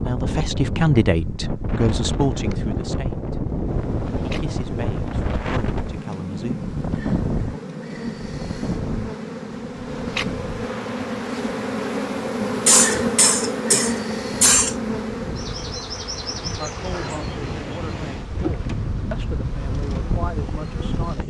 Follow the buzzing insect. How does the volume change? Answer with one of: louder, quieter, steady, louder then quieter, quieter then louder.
louder then quieter.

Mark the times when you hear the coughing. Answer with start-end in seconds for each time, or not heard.
12.7-14.8.